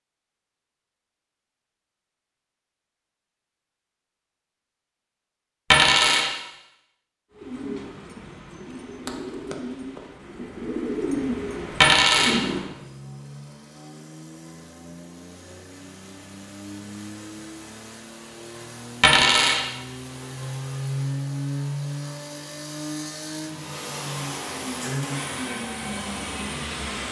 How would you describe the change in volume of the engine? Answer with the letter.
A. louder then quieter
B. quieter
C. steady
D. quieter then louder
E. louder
E.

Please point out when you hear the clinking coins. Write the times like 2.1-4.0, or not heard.
5.7-6.3, 11.8-12.4, 19.0-19.6.